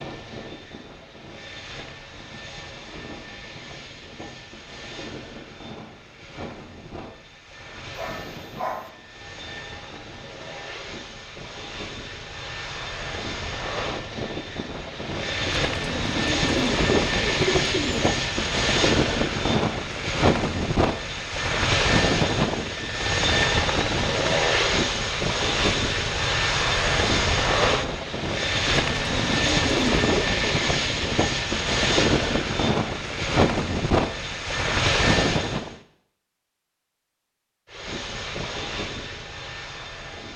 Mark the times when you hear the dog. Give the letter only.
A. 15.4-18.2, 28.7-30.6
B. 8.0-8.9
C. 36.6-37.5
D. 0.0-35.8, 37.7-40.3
B.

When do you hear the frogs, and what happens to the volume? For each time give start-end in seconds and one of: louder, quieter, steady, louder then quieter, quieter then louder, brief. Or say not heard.
not heard.